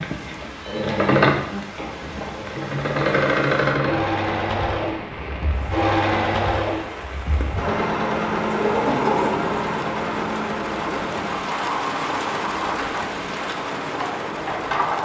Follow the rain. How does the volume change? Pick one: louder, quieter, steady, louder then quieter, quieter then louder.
louder.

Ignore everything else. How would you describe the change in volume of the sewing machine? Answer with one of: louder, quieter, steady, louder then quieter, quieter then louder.
quieter.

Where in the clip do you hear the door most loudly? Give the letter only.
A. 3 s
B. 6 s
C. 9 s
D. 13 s
C.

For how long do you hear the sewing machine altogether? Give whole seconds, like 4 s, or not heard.
15 s.